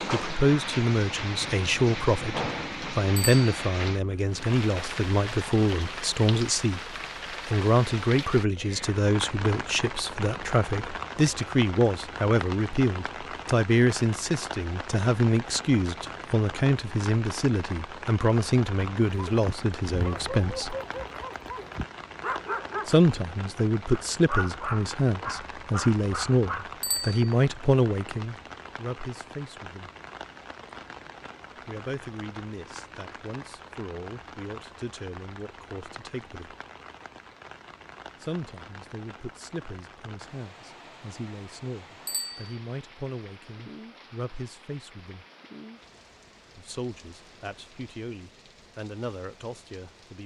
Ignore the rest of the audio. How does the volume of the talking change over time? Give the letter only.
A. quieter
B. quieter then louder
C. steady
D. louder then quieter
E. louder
A.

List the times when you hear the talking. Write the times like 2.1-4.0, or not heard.
0.1-6.8, 7.5-20.8, 22.9-29.9, 31.6-36.5, 38.2-45.2, 46.5-50.2.